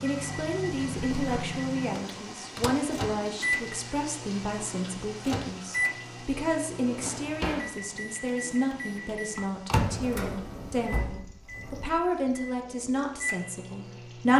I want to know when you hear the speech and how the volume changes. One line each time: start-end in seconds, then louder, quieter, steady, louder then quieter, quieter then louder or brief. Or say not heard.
0.0-14.3 steady.